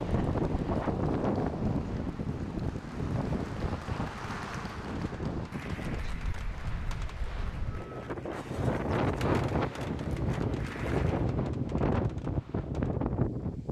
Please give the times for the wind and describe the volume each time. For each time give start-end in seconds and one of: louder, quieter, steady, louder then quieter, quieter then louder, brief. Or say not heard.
0.0-13.6 quieter then louder.